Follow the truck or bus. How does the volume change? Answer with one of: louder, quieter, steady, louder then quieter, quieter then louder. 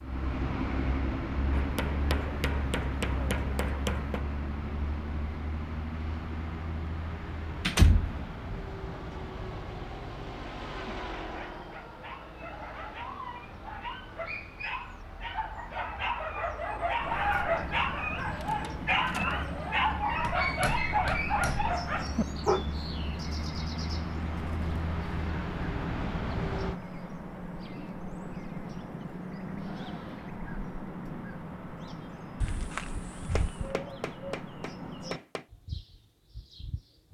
quieter then louder.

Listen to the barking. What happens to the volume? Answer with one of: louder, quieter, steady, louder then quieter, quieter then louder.
louder.